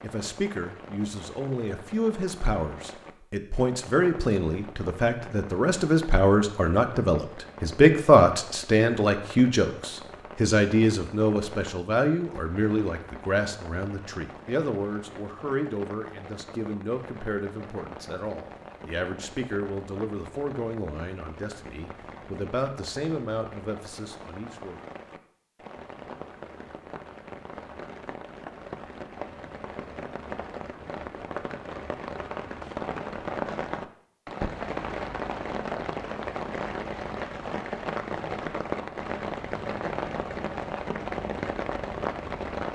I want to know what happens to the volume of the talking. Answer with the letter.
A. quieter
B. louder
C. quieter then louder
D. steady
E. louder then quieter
E.